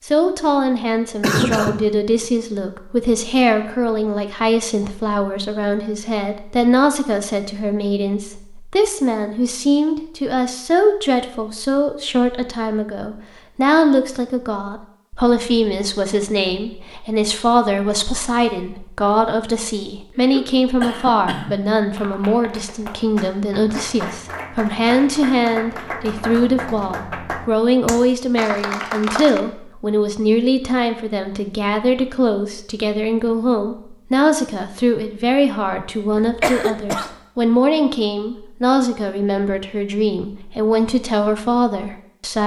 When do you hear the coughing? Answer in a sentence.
The coughing can be heard from 1.2 to 1.9 s, from 20.1 to 21.6 s and from 36.1 to 37.1 s.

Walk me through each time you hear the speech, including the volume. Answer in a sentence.
You can hear the speech from 0.1 to 42.4 s, at a steady volume.